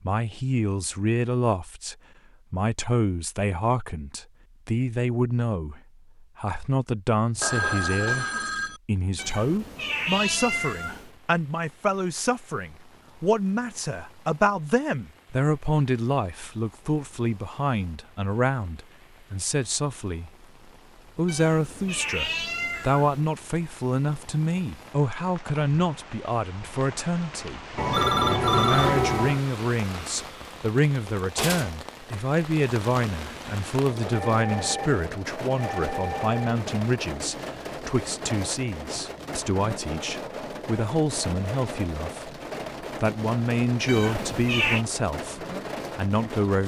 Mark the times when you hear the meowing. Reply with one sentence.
The meowing can be heard from 9.2 to 11.1 s, from 21.2 to 23.4 s and from 43.9 to 44.9 s.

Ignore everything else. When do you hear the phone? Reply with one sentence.
You can hear the phone from 7.4 to 8.8 s, from 27.8 to 29.4 s and from 34.1 to 36.6 s.